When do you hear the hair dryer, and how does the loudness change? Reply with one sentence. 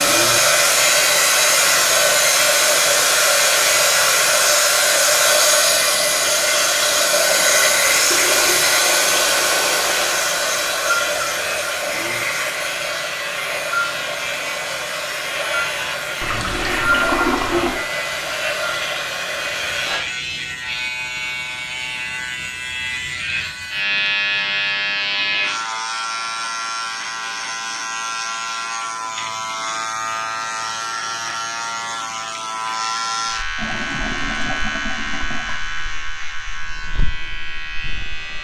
You can hear the hair dryer from 0.0 to 20.1 s, getting quieter.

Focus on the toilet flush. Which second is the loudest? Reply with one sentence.
The volume of the toilet flush peaks at 17 seconds.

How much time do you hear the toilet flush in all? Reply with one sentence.
You can hear the toilet flush for 6 seconds altogether.